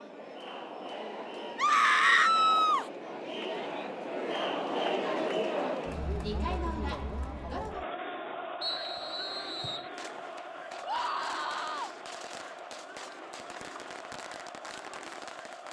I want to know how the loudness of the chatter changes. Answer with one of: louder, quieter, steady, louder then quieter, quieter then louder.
louder then quieter.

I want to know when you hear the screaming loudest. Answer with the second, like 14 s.
2 s.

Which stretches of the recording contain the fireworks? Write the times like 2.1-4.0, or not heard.
9.8-15.6.